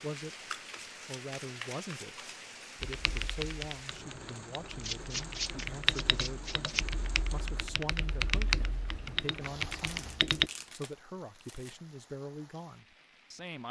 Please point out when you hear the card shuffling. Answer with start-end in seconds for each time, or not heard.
0.5-2.2, 4.8-6.8, 9.7-11.8.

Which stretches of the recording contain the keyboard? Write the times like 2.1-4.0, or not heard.
2.8-10.5.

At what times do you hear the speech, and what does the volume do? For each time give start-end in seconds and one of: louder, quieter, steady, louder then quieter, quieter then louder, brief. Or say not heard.
0.0-13.6 steady.